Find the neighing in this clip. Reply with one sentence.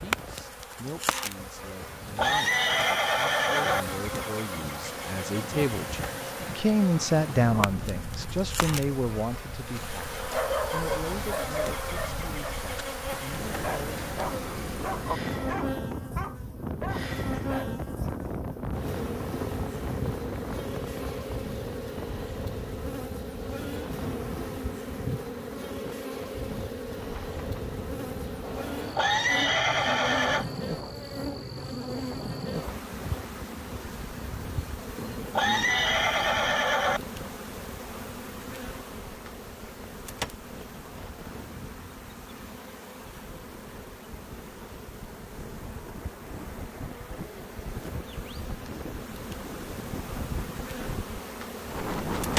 The neighing can be heard from 2.1 to 3.9 s, from 28.9 to 30.4 s and from 35.3 to 37.0 s.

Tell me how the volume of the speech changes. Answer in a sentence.
The volume of the speech goes up, then down.